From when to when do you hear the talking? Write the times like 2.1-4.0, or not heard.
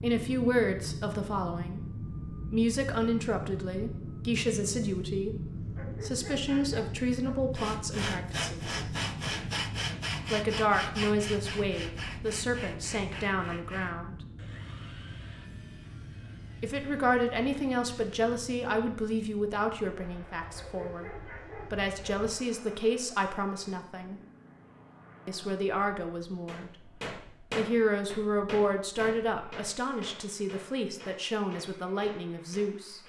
0.0-8.9, 10.3-14.2, 16.6-24.2, 25.2-26.9, 27.6-33.0.